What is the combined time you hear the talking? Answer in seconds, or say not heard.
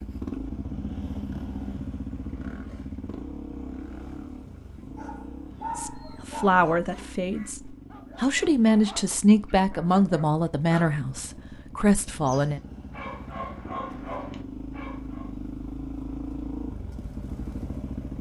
7 s.